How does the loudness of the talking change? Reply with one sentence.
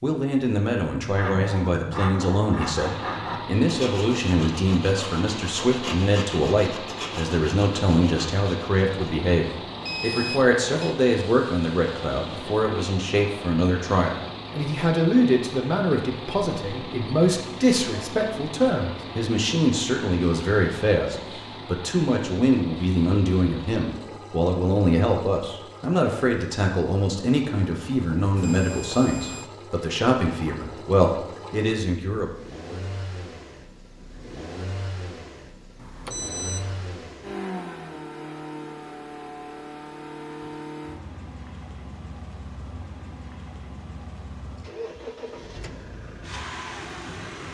The loudness of the talking stays about the same.